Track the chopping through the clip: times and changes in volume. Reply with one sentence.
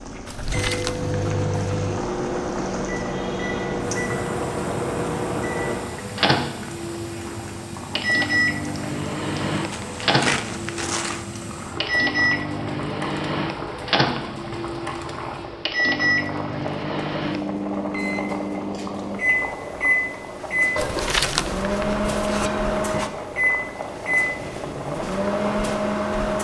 The chopping can't be heard in this clip.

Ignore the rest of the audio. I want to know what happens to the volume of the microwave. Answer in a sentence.
The loudness of the microwave stays about the same.